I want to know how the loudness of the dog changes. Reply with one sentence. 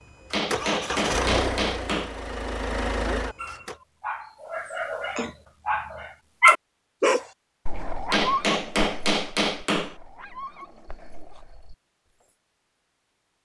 The loudness of the dog goes up, then down.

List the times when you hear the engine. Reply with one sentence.
The engine can be heard from 0.1 to 3.8 s.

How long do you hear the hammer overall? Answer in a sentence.
The hammer can be heard for 4 seconds in total.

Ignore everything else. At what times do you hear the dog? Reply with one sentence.
The dog can be heard from 3.4 to 11.8 s.